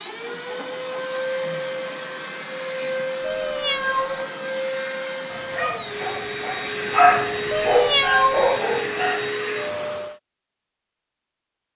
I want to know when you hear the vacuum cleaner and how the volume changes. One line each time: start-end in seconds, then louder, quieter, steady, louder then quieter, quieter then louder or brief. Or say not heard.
0.0-10.2 steady.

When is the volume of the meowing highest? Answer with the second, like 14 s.
8 s.